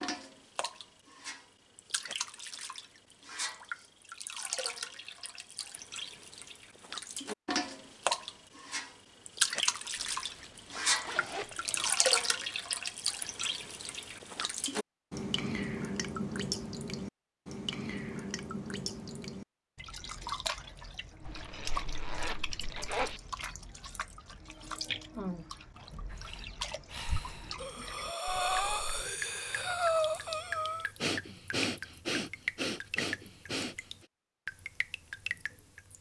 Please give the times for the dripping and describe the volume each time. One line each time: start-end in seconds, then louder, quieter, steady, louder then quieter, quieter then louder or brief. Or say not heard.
0.0-35.9 louder then quieter.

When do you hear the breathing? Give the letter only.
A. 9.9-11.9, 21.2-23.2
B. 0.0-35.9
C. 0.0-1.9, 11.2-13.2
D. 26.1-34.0
D.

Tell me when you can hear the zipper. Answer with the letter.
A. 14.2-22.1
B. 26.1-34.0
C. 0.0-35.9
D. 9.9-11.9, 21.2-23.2
D.